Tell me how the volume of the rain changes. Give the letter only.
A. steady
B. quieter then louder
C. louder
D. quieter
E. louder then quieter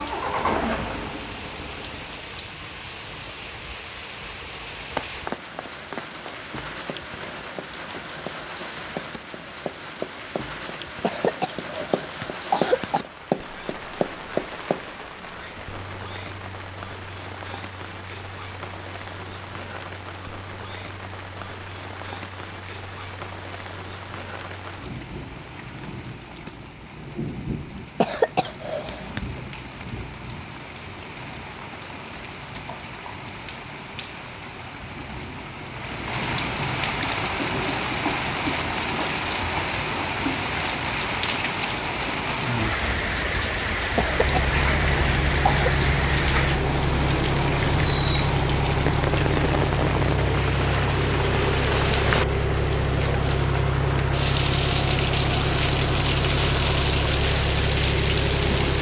C.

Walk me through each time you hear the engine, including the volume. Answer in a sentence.
You can hear the engine briefly from 0.0 to 2.4 s; and from 44.0 to 58.7 s, at a steady volume.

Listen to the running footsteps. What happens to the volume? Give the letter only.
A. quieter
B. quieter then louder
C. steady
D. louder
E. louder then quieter
B.